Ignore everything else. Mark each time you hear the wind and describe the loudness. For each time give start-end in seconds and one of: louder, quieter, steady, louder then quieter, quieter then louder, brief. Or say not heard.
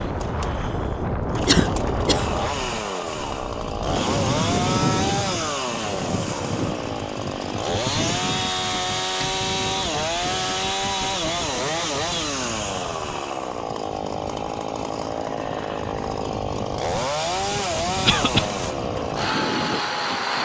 0.0-20.4 quieter then louder.